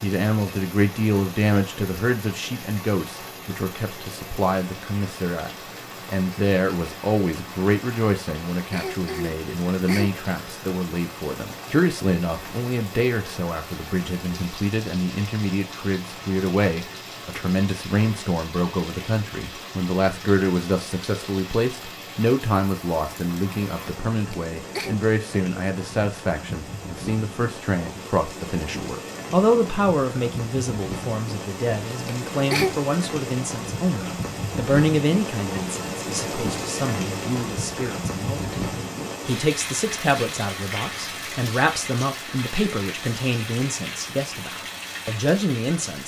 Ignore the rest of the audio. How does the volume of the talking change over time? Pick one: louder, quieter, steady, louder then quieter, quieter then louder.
steady.